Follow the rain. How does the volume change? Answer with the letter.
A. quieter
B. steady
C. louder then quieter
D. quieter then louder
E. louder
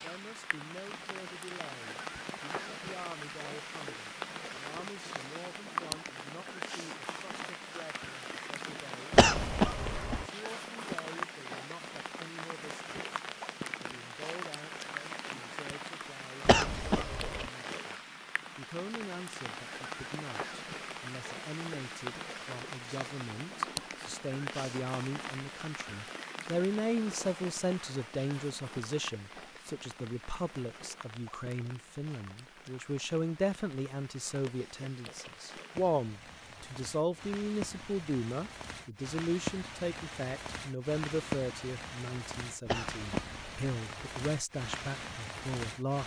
D.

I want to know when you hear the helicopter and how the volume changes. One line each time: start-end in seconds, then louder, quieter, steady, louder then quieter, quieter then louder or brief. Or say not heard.
not heard.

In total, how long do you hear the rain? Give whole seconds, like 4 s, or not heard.
46 s.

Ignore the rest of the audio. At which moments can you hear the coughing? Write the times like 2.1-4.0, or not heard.
9.1-10.2, 16.4-17.5, 42.6-43.5.